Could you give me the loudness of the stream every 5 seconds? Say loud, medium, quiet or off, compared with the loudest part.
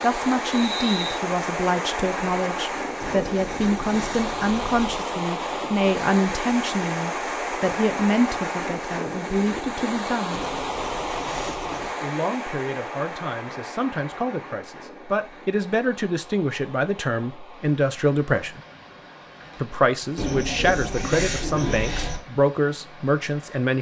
loud, loud, loud, quiet, quiet.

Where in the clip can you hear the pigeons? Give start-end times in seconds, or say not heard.
3.0-5.0, 10.3-11.9, 20.1-22.2.